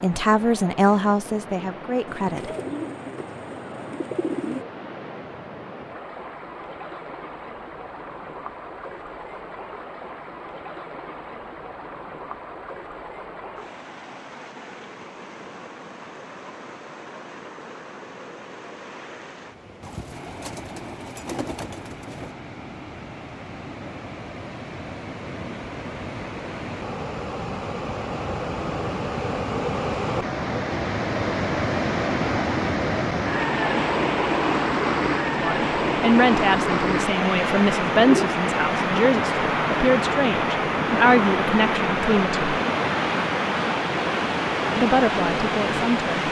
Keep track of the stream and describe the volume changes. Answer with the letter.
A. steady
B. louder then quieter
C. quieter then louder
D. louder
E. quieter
D.